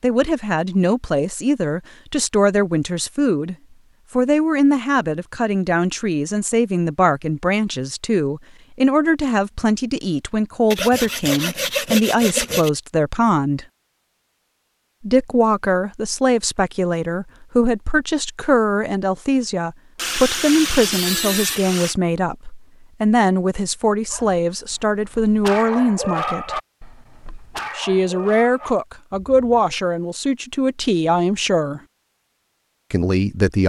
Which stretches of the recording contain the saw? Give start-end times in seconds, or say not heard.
10.7-12.7, 19.9-21.9.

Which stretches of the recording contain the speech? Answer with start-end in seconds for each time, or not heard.
0.0-13.7, 15.0-26.6, 27.8-31.8, 32.9-33.6.